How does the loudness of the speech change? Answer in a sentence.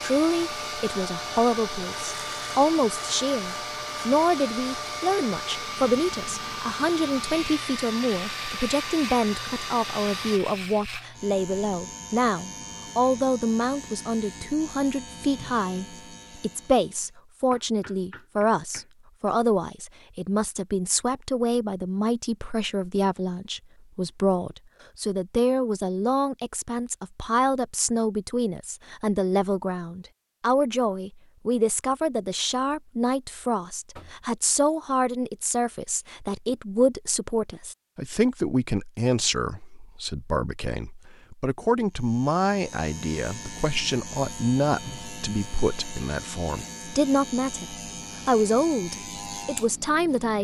The loudness of the speech stays about the same.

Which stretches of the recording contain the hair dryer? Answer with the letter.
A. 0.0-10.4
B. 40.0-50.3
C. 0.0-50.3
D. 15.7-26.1
A.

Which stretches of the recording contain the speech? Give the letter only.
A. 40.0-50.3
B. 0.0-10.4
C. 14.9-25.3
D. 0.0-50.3
D.